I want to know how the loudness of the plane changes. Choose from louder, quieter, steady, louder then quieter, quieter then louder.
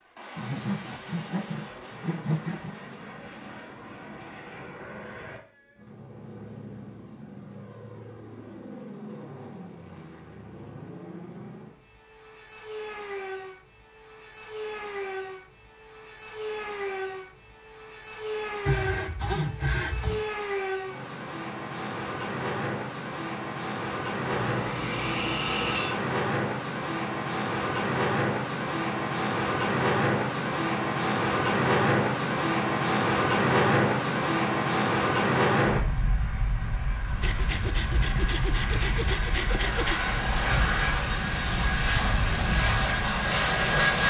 louder.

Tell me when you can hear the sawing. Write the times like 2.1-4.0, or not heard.
0.3-2.8, 18.6-20.3, 24.3-25.9, 37.2-40.1.